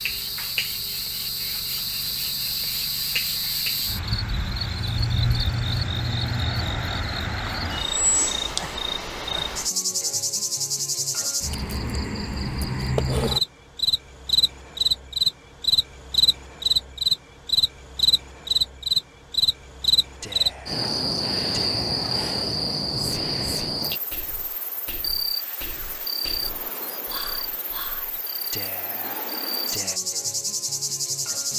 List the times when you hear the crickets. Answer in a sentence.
You can hear the crickets from 0.0 to 31.5 s.